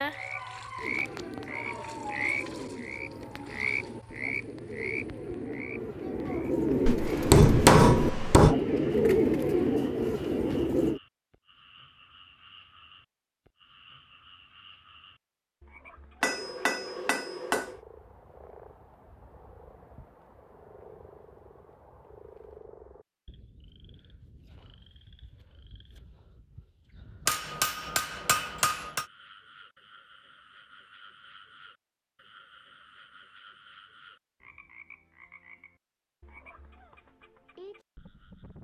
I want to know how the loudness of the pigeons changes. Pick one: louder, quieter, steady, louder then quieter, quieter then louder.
louder.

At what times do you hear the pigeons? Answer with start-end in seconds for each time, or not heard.
0.8-11.0.